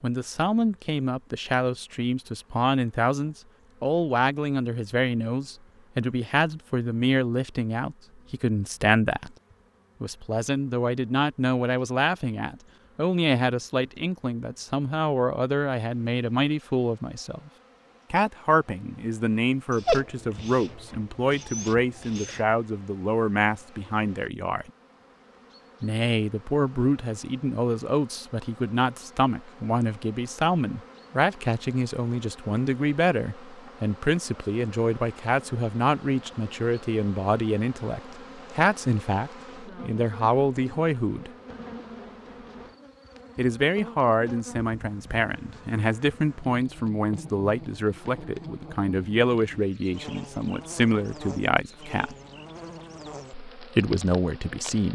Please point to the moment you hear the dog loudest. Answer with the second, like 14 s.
20 s.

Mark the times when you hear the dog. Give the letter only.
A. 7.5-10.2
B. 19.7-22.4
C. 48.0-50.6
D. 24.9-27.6
B.